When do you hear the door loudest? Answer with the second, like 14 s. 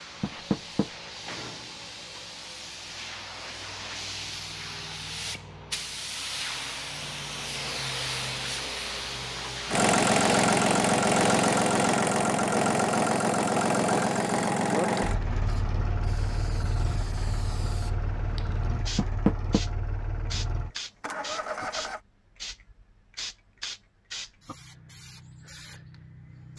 19 s.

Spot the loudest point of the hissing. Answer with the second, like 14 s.
8 s.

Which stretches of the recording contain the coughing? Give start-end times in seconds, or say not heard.
not heard.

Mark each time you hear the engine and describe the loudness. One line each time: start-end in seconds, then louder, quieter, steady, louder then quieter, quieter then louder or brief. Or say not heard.
9.7-22.0 quieter.